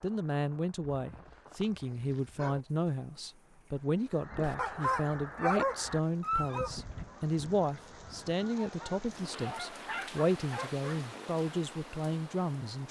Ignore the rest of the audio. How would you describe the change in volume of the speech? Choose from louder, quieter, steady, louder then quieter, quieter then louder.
steady.